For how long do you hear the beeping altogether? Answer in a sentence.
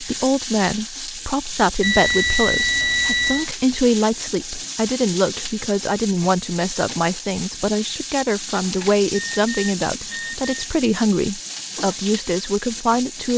The beeping can be heard for 4 seconds in total.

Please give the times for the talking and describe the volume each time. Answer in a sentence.
The talking can be heard from 0.0 to 13.3 s, at a steady volume.